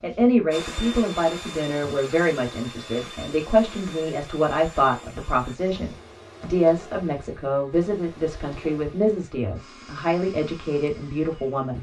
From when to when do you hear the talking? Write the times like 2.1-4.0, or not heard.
0.0-11.7.